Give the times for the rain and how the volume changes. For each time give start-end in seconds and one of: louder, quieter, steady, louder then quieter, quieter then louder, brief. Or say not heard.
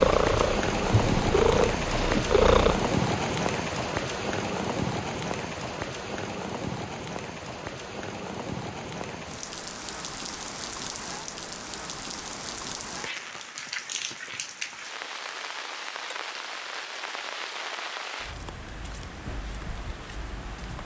0.0-20.8 quieter.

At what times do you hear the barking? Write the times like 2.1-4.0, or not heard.
not heard.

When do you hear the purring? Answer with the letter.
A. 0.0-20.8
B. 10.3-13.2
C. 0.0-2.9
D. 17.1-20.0
C.